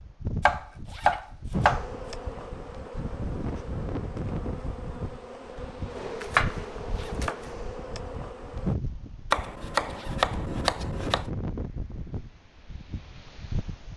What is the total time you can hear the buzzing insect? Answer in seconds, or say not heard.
7 s.